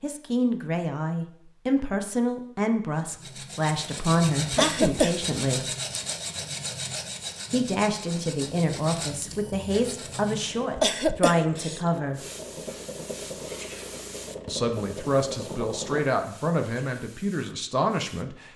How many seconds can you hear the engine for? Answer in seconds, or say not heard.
7 s.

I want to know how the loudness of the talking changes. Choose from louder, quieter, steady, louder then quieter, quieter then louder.
steady.